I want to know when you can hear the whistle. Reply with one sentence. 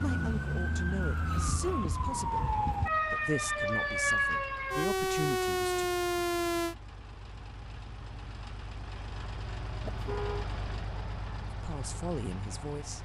You can't hear the whistle here.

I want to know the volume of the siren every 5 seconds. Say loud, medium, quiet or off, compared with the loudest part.
loud, loud, off.